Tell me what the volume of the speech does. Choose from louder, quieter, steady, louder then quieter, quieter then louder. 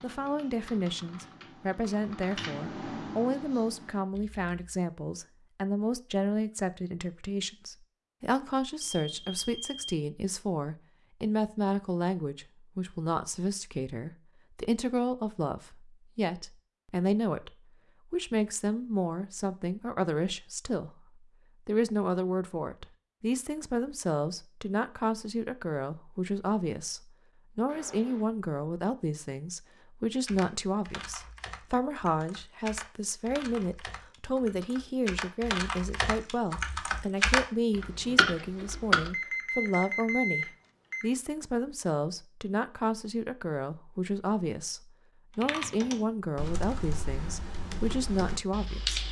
steady.